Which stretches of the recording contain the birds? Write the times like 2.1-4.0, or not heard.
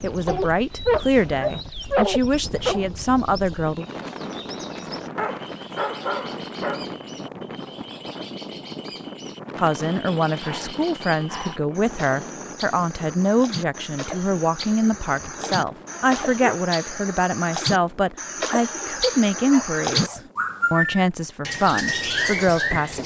0.0-23.0.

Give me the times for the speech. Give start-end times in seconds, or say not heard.
0.0-3.9, 9.6-23.0.